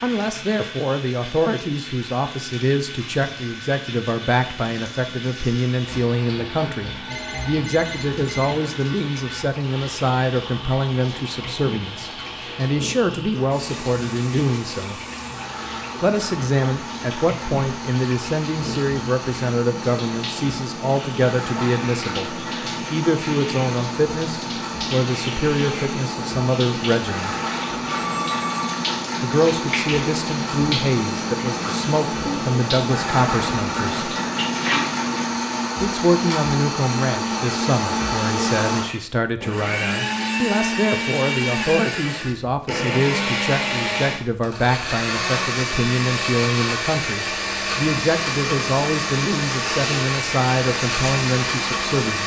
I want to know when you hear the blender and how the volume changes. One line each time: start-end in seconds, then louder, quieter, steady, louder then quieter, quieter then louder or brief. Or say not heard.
0.0-52.2 louder.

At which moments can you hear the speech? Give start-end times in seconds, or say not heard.
0.0-15.0, 16.0-27.4, 29.2-34.0, 35.8-52.2.